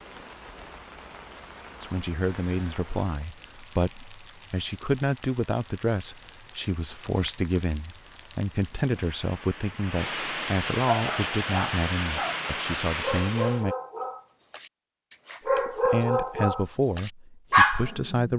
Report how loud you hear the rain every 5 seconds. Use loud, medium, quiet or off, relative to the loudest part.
quiet, quiet, loud, off.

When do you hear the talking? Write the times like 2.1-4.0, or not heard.
1.8-13.8, 15.7-18.3.